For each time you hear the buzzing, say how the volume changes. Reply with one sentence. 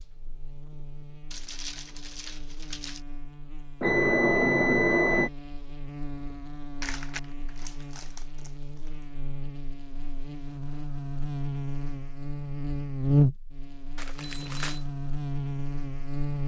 The buzzing can be heard from 0.0 to 16.4 s, getting louder.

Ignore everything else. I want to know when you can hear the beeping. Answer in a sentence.
The beeping can be heard from 3.8 to 5.3 s and from 14.2 to 14.8 s.